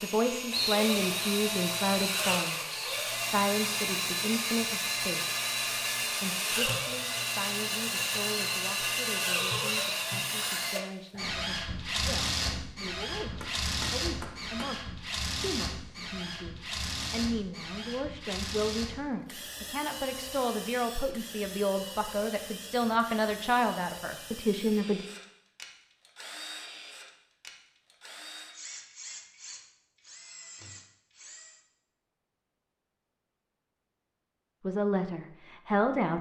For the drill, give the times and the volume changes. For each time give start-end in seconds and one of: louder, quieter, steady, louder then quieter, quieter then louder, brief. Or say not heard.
0.0-31.6 quieter.